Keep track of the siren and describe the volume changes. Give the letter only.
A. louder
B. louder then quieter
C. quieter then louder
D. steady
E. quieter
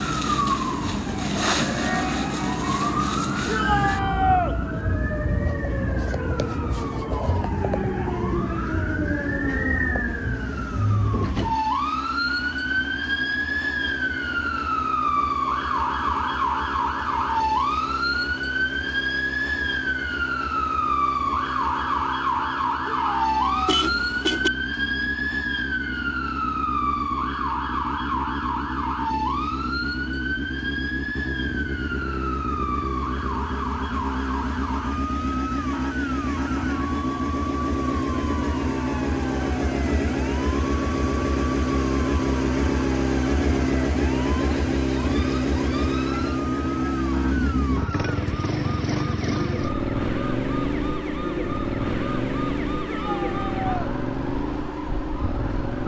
E.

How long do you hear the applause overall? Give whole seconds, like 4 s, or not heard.
not heard.